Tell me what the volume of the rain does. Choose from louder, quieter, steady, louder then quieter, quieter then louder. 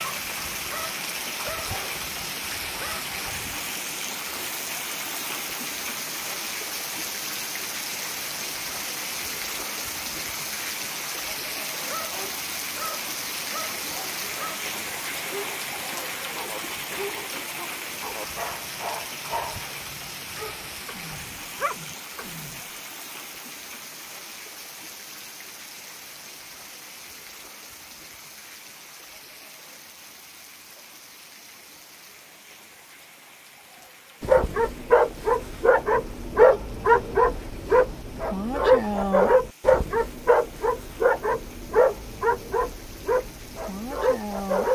quieter.